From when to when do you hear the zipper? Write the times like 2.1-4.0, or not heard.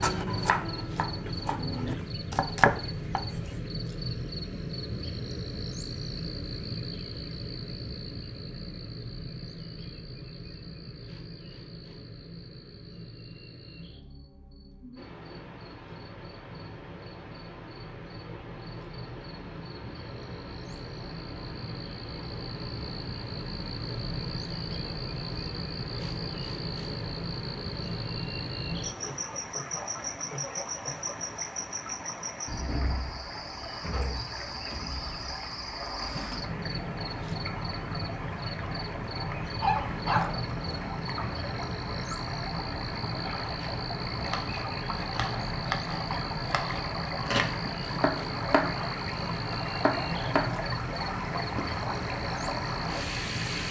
not heard.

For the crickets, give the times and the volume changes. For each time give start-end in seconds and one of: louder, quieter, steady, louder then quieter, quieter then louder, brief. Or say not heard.
0.0-53.6 quieter then louder.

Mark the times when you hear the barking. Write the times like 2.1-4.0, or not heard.
39.6-40.8.